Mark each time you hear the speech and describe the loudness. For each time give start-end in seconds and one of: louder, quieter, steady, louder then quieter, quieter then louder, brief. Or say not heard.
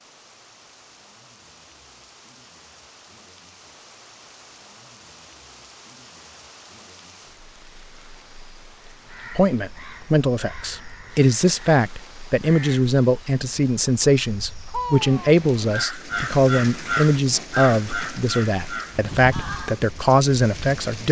9.3-21.0 steady.